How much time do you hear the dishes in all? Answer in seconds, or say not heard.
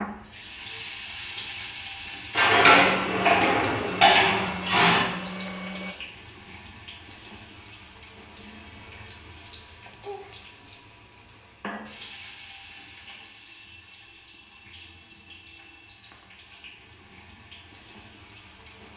3 s.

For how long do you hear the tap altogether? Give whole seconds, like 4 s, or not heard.
19 s.